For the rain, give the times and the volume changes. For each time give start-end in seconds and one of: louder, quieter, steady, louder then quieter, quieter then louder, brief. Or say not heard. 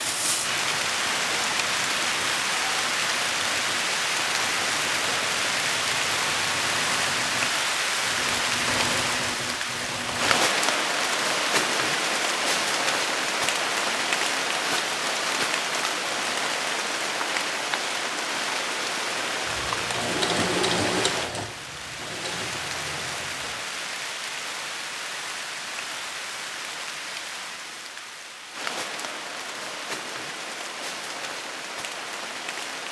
0.0-32.8 quieter.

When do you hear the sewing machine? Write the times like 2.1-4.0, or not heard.
0.0-10.4, 19.1-23.6.